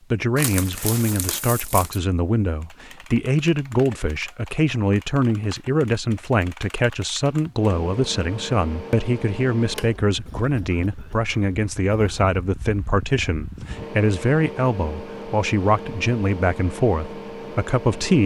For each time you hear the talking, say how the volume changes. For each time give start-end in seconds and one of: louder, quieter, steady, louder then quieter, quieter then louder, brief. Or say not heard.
0.1-18.2 steady.